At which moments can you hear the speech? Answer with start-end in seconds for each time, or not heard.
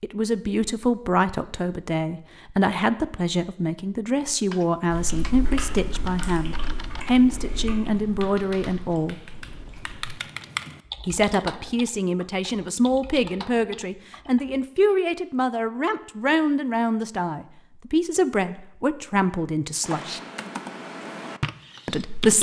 0.0-9.2, 11.1-20.2, 21.9-22.3.